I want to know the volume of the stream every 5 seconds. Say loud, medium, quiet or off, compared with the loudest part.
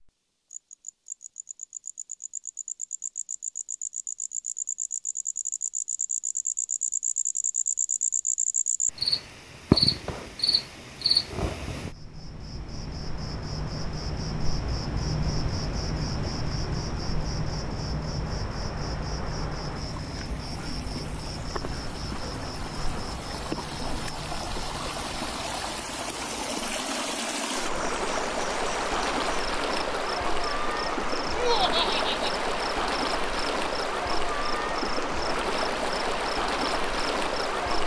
off, off, quiet, quiet, medium, loud, loud, loud.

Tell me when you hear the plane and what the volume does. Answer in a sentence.
The plane can't be heard in this clip.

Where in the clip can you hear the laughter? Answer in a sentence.
The laughter can be heard from 31.4 to 32.4 s.